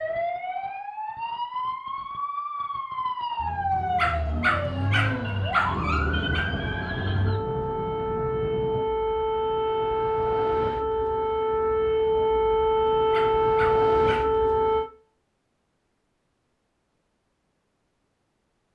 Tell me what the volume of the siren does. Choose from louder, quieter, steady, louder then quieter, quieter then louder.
louder.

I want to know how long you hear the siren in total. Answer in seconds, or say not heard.
15 s.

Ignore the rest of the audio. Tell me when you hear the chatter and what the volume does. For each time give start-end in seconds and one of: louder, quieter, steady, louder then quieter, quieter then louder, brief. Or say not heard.
not heard.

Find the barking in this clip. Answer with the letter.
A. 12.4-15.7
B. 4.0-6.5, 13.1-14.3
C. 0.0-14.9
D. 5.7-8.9
B.